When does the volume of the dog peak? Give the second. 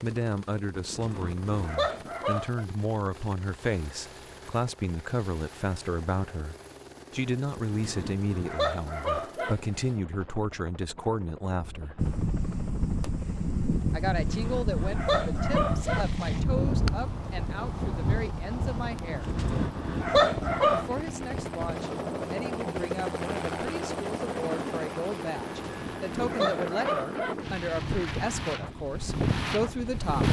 20 s.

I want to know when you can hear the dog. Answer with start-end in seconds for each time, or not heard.
0.8-2.6, 7.5-9.6, 14.2-16.1, 19.1-20.9, 25.5-27.4.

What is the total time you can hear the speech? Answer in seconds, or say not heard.
27 s.